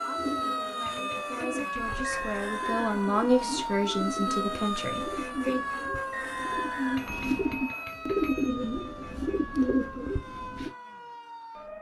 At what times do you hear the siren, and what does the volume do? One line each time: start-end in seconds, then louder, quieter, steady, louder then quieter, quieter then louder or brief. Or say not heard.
0.0-11.7 quieter.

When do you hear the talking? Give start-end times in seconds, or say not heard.
0.0-5.6.